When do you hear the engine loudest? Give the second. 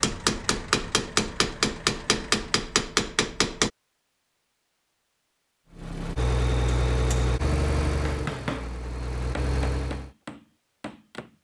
7 s.